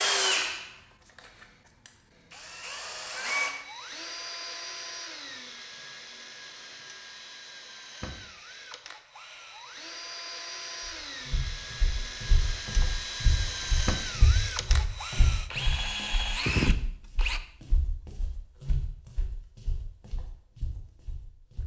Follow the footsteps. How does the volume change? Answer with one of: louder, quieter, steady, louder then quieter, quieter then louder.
quieter.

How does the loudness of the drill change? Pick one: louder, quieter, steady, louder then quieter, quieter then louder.
quieter then louder.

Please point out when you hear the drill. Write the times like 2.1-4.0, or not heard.
0.0-17.4.